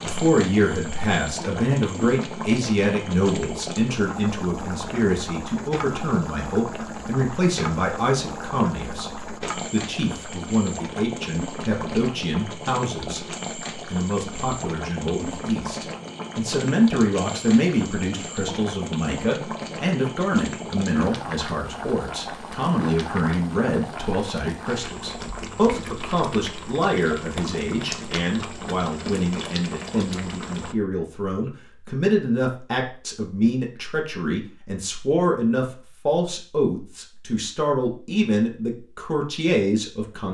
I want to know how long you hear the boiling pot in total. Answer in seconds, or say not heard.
31 s.